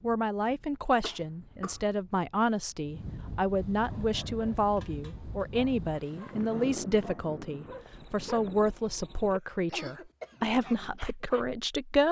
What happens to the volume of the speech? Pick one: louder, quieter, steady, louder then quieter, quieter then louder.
steady.